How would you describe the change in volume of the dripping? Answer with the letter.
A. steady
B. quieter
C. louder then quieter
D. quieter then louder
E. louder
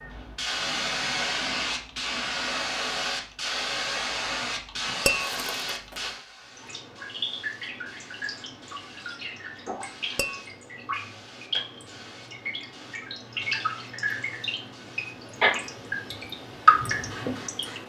E.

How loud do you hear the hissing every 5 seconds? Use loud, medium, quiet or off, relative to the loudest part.
loud, medium, quiet, quiet.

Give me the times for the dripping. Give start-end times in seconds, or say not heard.
6.5-17.8.